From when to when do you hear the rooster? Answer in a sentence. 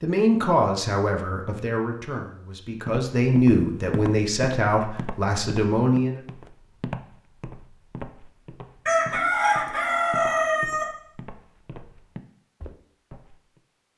The rooster can be heard from 8.8 to 10.8 s.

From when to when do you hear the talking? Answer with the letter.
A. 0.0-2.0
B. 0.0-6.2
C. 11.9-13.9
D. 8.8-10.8
B.